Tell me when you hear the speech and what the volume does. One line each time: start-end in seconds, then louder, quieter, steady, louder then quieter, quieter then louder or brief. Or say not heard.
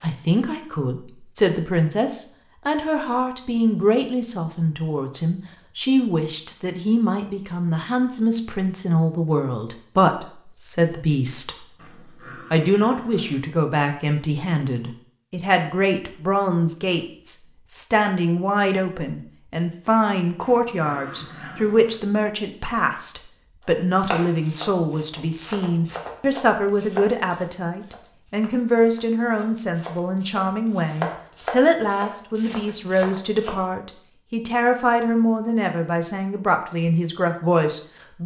0.0-11.7 steady
12.3-38.2 steady.